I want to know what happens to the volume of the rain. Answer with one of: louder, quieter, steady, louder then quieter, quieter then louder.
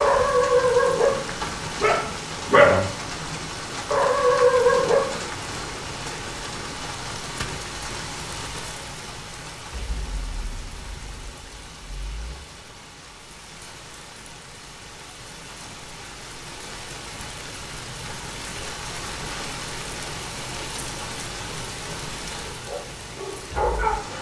quieter then louder.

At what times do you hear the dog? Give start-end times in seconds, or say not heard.
0.0-5.2, 22.6-24.1.